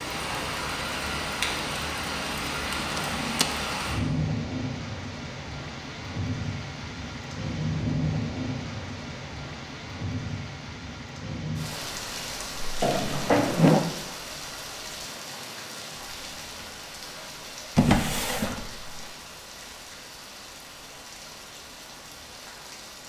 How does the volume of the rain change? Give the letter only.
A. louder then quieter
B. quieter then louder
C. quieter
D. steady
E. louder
C.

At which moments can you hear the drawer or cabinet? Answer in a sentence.
You can hear the drawer or cabinet from 2.8 to 3.5 s, from 12.8 to 13.8 s and from 17.8 to 18.9 s.